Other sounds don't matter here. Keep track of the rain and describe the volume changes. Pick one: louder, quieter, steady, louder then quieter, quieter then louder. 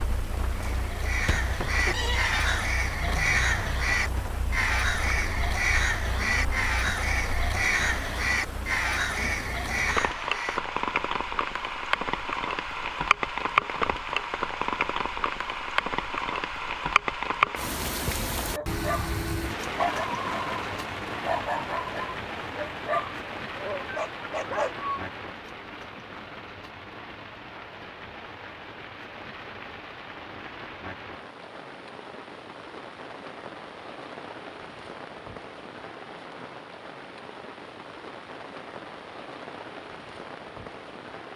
louder then quieter.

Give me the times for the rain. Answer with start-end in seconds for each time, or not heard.
0.0-41.3.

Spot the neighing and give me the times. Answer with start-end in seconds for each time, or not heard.
1.9-2.6.